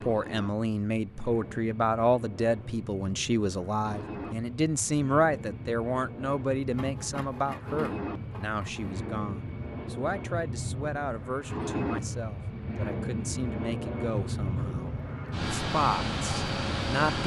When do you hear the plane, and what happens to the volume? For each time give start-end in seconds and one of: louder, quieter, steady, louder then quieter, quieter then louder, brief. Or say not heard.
0.0-17.2 louder.